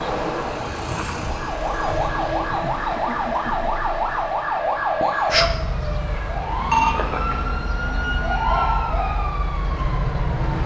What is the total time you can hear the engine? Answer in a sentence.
The engine can be heard for 2 seconds in total.